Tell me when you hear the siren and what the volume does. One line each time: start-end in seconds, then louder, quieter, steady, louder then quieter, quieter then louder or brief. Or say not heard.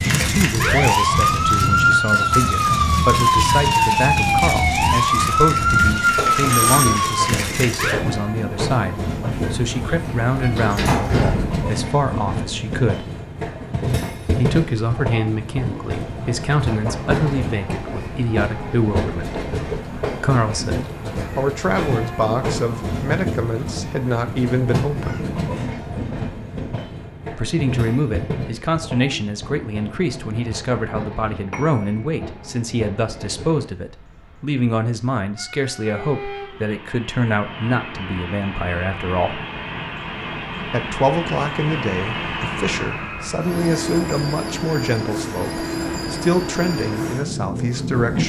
0.0-8.0 steady.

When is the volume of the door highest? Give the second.
11 s.